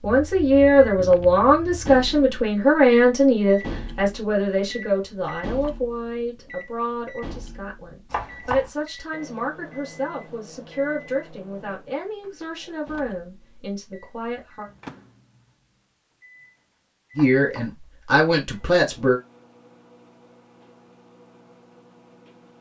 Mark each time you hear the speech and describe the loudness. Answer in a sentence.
The speech can be heard from 0.0 to 14.7 s, getting quieter; and briefly from 17.1 to 19.2 s.